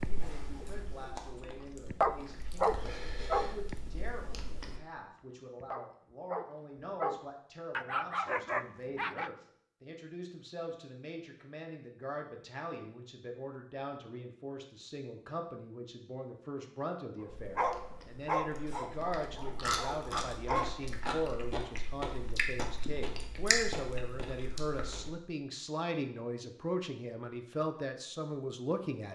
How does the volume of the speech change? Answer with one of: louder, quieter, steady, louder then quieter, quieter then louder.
louder.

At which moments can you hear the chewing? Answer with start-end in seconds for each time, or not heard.
0.0-4.8, 17.3-25.1.